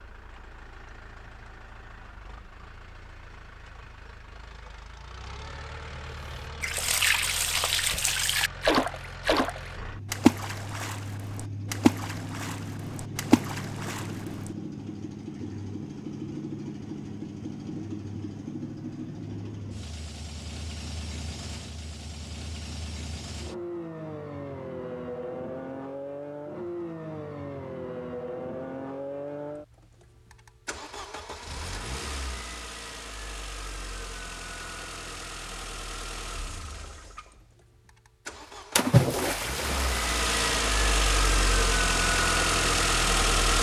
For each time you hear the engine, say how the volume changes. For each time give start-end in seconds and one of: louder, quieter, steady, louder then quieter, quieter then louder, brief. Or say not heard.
0.0-43.5 louder.